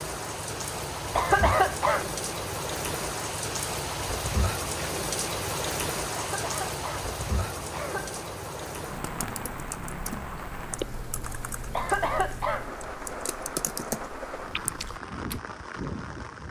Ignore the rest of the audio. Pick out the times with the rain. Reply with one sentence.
The rain can be heard from 0.0 to 16.4 s.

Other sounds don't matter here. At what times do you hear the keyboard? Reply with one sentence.
The keyboard can be heard from 9.0 to 15.4 s.